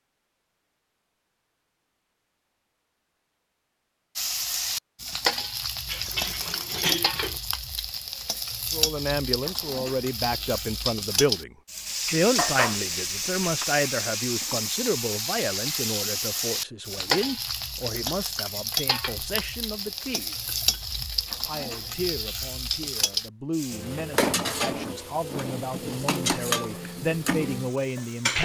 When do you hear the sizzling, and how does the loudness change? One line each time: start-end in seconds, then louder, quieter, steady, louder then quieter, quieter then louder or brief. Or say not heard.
4.2-28.4 steady.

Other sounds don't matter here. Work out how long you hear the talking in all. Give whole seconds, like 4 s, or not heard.
19 s.